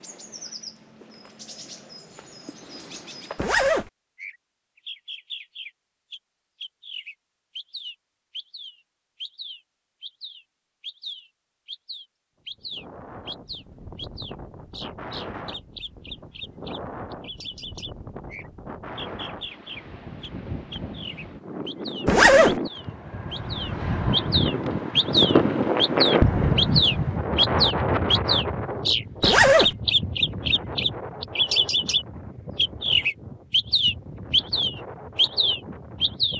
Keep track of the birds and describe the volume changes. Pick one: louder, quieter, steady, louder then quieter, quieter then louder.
louder.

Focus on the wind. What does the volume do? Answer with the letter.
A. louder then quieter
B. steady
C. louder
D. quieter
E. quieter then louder
A.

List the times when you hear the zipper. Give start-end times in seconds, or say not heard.
3.4-3.9, 22.1-22.6, 29.2-29.8.